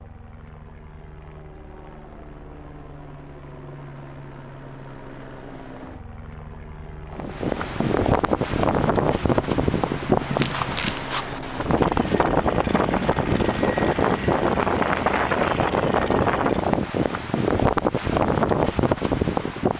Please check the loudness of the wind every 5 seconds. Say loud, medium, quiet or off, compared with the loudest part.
off, loud, loud, loud.